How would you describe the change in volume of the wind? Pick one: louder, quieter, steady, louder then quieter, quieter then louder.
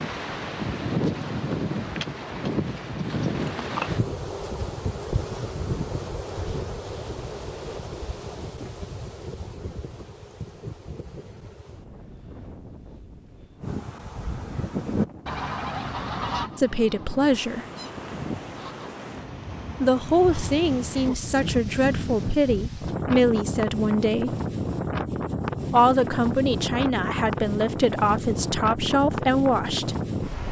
quieter then louder.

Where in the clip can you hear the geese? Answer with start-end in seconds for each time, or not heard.
13.6-18.9.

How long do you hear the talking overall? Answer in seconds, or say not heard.
10 s.